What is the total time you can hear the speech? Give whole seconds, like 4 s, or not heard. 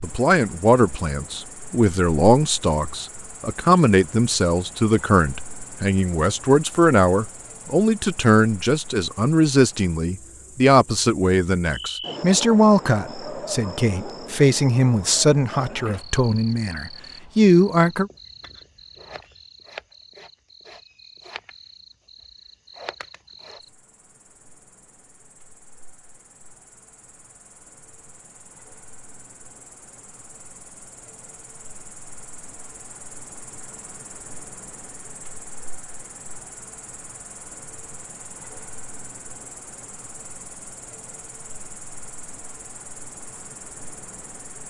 18 s.